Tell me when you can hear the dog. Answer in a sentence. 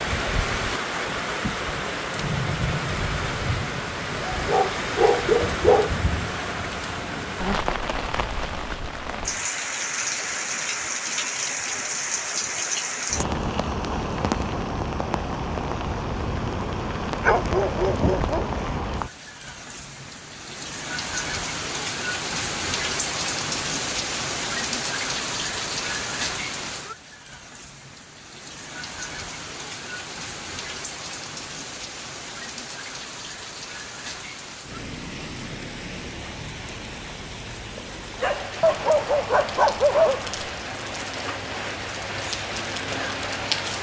The dog can be heard from 4.3 to 6.0 s, from 17.2 to 18.8 s and from 38.2 to 40.5 s.